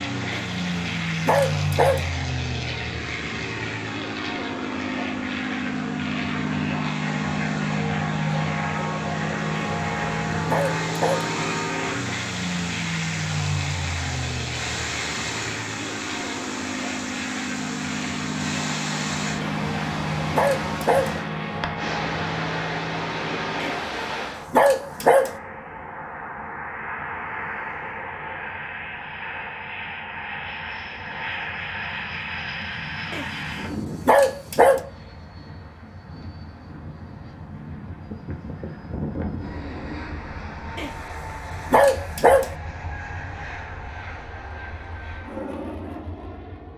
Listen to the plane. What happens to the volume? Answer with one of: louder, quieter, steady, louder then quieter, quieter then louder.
quieter.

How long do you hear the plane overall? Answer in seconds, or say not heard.
47 s.